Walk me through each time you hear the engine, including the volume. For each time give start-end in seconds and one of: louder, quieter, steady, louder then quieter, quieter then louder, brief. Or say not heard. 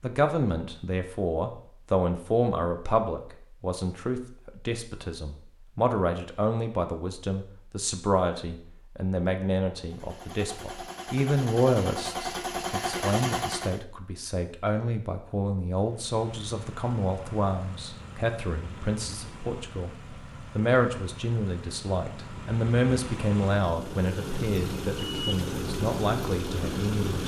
9.8-13.8 louder
15.8-27.2 louder.